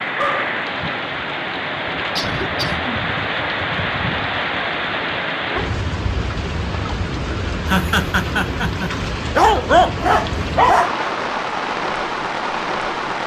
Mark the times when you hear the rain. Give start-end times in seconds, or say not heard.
0.0-13.2.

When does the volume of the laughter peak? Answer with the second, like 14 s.
8 s.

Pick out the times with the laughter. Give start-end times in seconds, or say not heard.
2.1-3.0, 7.7-8.9.